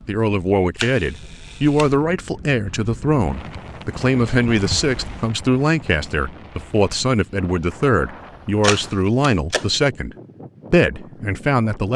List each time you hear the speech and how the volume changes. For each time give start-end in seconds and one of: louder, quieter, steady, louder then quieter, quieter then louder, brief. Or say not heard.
0.1-10.1 steady
10.7-11.9 brief.